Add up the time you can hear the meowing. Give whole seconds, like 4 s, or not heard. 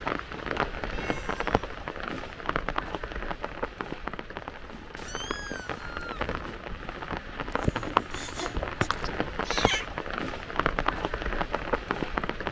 3 s.